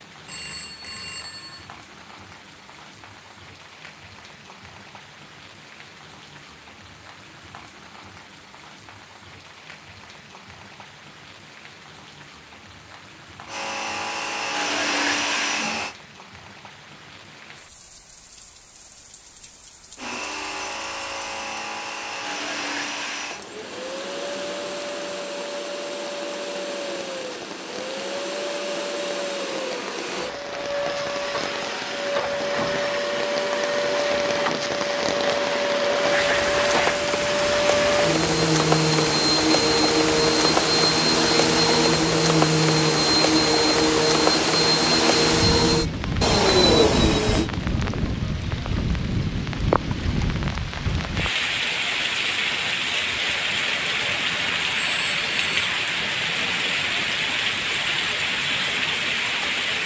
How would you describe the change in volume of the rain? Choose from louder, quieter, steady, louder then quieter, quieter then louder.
louder.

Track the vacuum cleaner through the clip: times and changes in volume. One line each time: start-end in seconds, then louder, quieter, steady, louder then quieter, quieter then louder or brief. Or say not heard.
13.4-15.9 brief
19.9-47.5 louder.